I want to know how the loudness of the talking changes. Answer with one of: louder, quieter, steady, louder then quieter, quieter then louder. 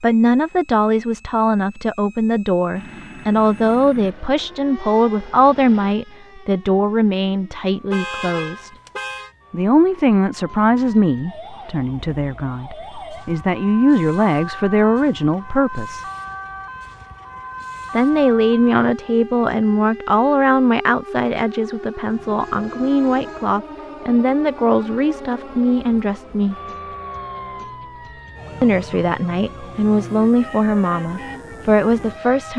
steady.